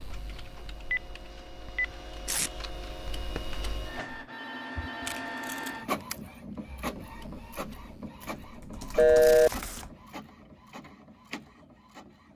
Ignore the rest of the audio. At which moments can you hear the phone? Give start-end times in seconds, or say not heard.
0.7-1.9, 4.3-5.2, 8.9-9.5.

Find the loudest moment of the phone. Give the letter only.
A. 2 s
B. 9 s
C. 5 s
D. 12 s
B.